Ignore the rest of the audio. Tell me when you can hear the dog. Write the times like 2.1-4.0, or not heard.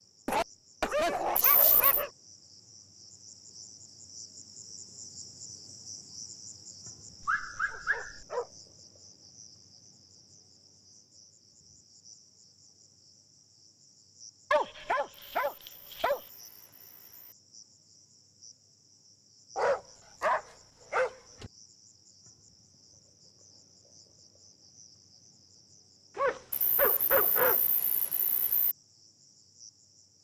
0.2-2.1, 7.2-8.4, 14.5-16.2, 19.6-21.5, 26.1-27.6.